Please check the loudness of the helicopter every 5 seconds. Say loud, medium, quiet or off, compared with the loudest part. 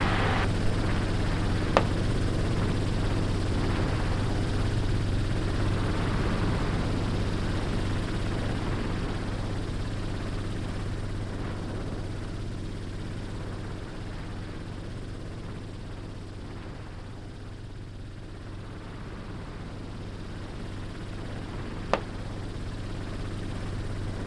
loud, loud, medium, quiet, medium.